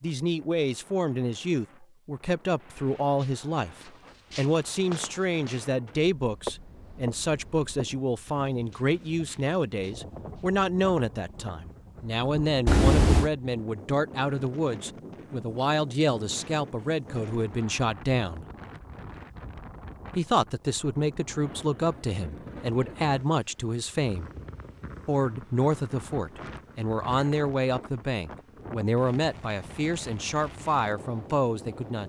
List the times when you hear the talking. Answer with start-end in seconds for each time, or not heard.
0.0-18.4, 20.1-24.3, 25.1-32.0.